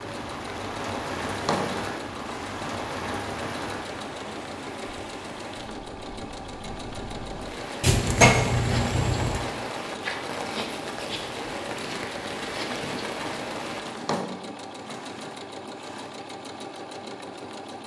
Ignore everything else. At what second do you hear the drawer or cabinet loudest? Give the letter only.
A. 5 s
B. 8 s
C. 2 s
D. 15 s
B.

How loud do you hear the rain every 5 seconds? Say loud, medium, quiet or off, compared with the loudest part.
loud, loud, loud, off.